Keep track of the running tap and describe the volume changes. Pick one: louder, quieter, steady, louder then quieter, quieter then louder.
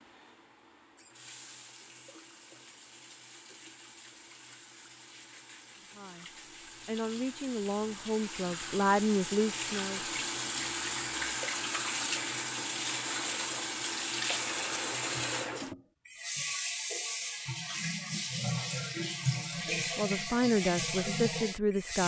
louder.